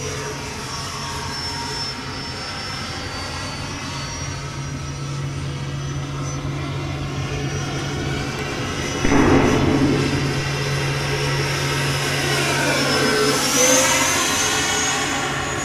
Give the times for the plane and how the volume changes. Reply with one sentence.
You can hear the plane from 0.0 to 15.6 s, getting louder.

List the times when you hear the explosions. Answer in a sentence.
You can hear the explosions from 9.0 to 10.4 s.